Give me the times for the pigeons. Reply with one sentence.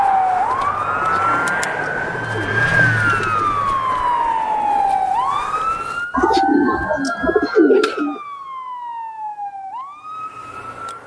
The pigeons can be heard from 0.9 to 3.6 s and from 6.1 to 8.2 s.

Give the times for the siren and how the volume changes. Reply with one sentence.
The siren can be heard from 0.0 to 11.0 s, getting quieter.